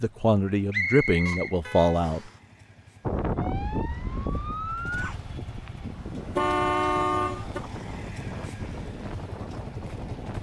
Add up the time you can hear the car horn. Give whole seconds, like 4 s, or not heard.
2 s.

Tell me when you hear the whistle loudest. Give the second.
1 s.